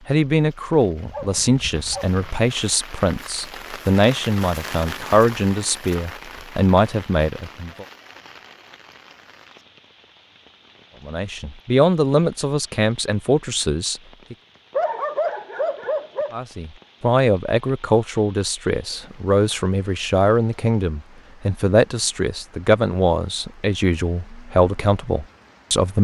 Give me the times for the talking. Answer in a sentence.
The talking can be heard from 0.1 to 7.8 s, from 11.1 to 14.3 s and from 16.3 to 25.9 s.